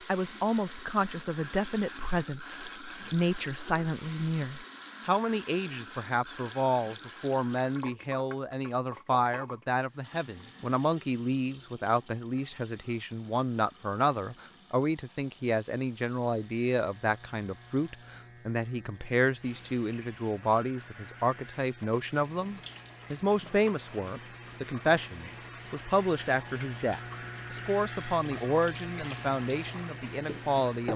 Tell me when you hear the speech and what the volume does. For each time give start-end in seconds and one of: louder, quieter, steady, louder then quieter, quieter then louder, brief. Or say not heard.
0.1-30.9 steady.